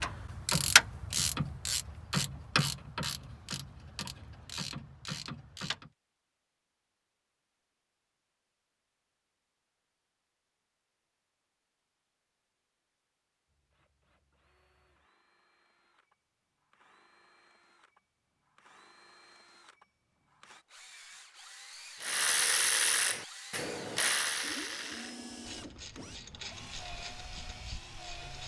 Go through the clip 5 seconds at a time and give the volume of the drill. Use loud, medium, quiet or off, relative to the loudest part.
off, off, quiet, quiet, loud, loud.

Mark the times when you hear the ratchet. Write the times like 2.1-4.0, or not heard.
0.0-5.9, 22.0-28.4.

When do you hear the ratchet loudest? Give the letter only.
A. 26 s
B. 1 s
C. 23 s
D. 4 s
B.